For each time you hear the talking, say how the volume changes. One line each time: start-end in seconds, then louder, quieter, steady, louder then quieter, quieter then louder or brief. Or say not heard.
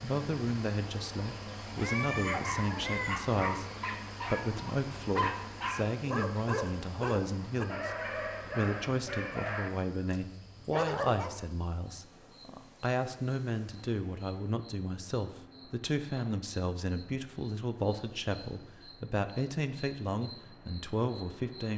0.0-21.7 steady.